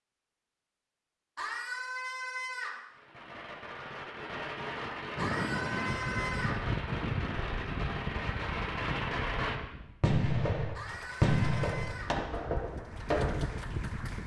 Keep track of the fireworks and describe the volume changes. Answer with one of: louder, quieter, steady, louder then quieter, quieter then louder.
louder.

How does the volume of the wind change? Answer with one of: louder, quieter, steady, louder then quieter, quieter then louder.
quieter then louder.